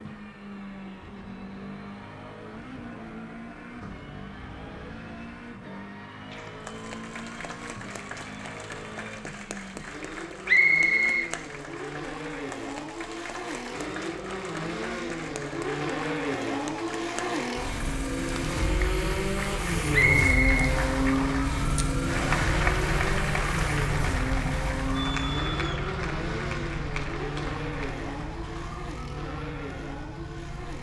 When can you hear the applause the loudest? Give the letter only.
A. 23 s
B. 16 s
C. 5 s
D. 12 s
A.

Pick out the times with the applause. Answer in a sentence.
The applause can be heard from 6.3 to 28.8 s.